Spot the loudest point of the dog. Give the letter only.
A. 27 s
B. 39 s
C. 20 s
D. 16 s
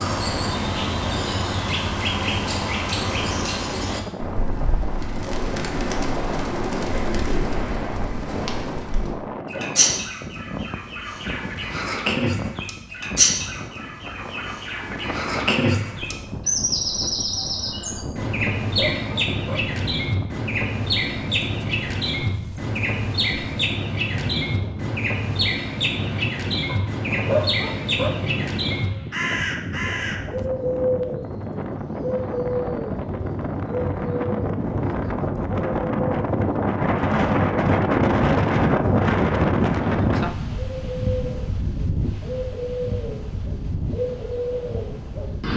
A.